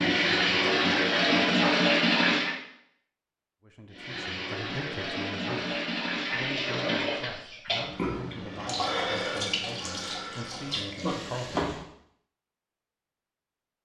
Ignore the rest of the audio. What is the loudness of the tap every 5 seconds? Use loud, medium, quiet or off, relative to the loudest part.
loud, medium, medium.